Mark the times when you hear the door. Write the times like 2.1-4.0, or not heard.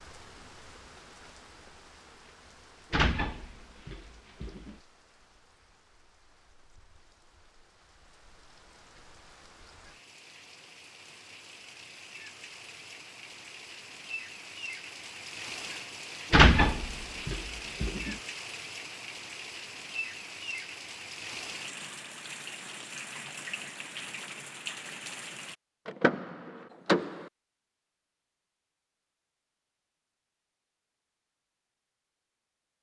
2.9-4.8, 16.3-18.1, 25.9-27.3.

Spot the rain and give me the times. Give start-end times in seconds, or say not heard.
0.0-25.6.